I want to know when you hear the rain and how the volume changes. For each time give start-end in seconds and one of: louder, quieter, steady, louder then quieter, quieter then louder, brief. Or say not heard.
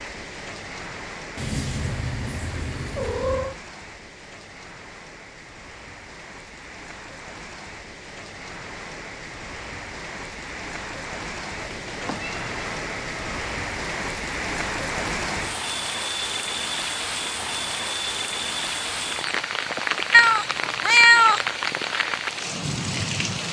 0.0-23.4 louder.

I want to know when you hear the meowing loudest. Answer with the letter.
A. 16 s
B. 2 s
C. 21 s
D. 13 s
C.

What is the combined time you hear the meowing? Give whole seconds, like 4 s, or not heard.
5 s.